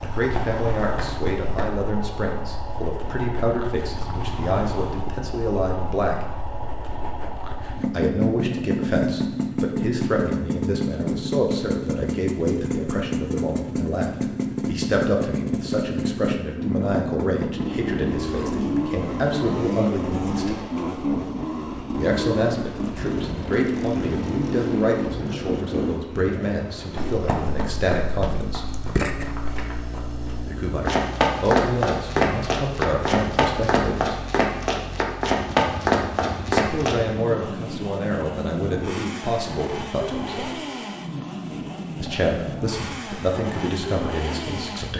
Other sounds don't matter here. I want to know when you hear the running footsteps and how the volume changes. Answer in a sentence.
You can hear the running footsteps briefly from 0.0 to 1.7 s; and from 26.9 to 37.0 s, getting louder.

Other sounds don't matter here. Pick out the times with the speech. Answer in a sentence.
The speech can be heard from 0.0 to 6.3 s, from 7.9 to 20.6 s, from 21.9 to 28.6 s, from 30.4 to 34.2 s, from 36.5 to 40.6 s and from 42.0 to 44.9 s.